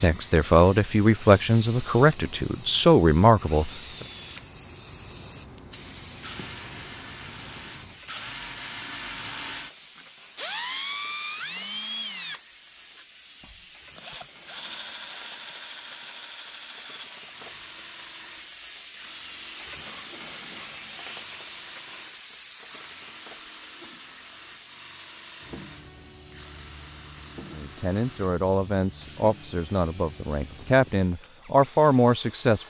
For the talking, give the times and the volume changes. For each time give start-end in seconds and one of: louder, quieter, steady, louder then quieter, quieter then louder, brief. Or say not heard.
0.0-4.0 steady
27.5-32.6 louder.